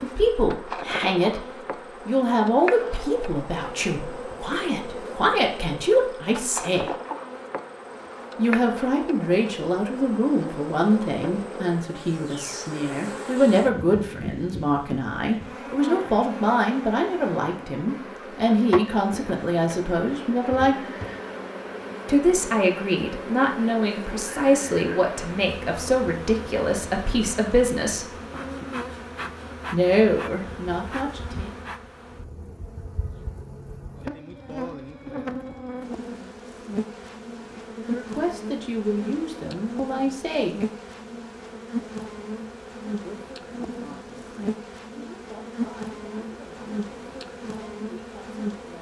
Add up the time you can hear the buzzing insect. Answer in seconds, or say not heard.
49 s.